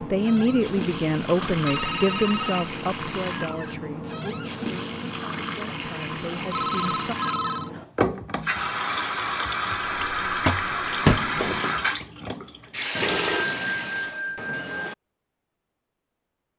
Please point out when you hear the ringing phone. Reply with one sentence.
You can hear the ringing phone from 1.4 to 2.7 s, from 6.5 to 7.7 s and from 12.9 to 14.9 s.